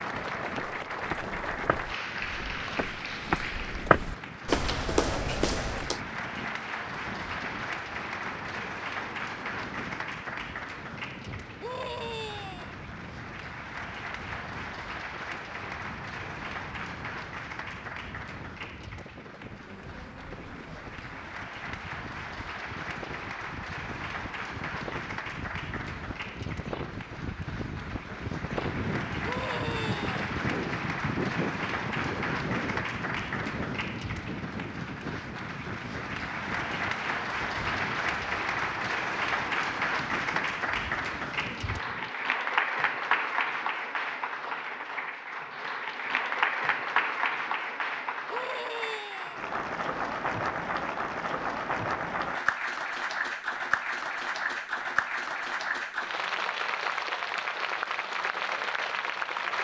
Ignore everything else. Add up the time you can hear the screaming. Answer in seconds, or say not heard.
3 s.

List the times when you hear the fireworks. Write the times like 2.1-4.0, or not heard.
not heard.